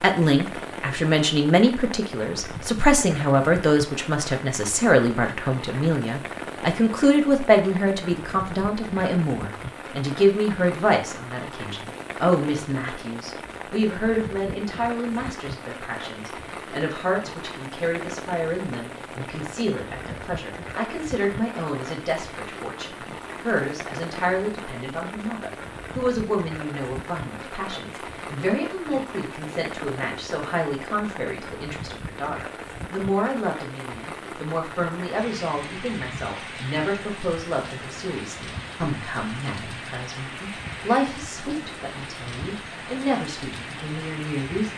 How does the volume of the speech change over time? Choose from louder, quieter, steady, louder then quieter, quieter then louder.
quieter.